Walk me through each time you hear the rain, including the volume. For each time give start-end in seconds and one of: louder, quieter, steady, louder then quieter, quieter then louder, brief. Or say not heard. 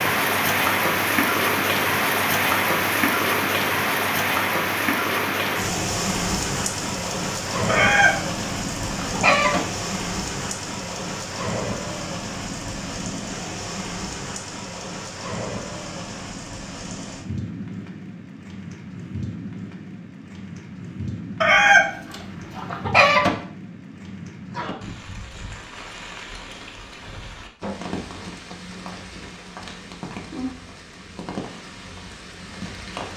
0.0-33.1 quieter.